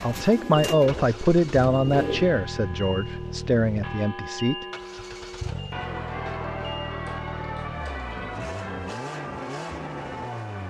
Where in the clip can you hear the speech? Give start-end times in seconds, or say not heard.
0.0-4.7.